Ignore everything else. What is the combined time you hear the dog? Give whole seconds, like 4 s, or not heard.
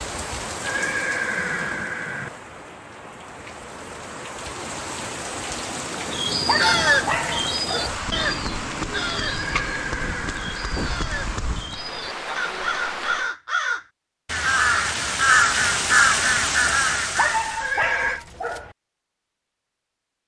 3 s.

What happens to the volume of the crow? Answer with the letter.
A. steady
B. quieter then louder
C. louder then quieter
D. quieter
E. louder
B.